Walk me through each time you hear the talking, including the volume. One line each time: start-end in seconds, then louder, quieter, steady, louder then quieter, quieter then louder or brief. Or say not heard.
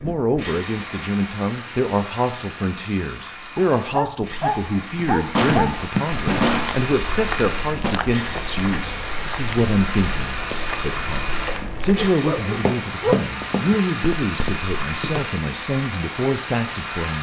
0.0-17.1 steady.